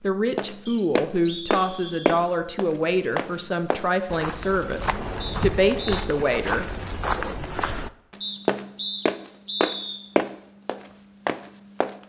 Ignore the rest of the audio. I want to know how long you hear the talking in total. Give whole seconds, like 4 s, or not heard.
7 s.